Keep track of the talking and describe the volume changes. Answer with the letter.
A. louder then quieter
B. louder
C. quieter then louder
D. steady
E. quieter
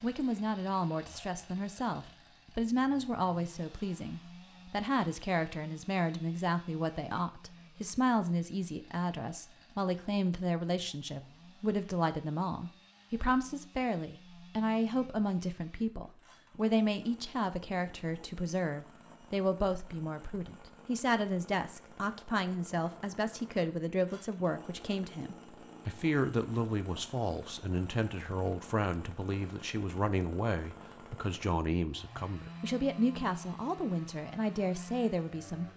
D.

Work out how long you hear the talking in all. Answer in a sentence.
The talking can be heard for 36 seconds in total.